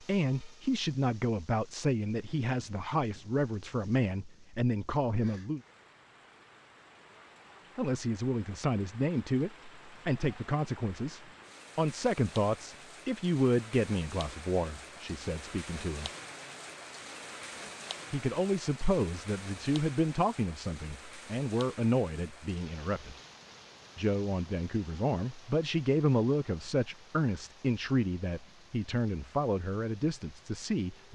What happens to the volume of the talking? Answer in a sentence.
The volume of the talking stays about the same.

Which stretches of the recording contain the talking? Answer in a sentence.
The talking can be heard from 0.0 to 5.6 s, from 7.8 to 16.1 s, from 18.1 to 23.1 s and from 23.9 to 31.1 s.